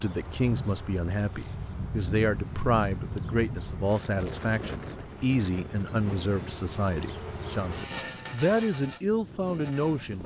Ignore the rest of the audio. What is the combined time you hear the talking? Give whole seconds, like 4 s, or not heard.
10 s.